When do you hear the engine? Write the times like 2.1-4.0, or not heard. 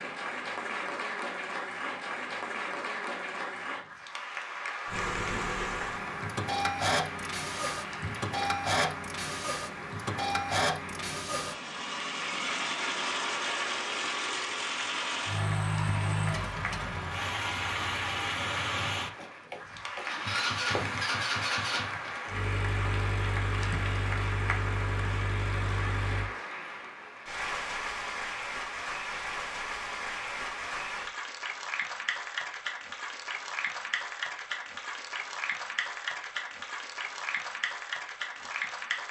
4.8-26.3.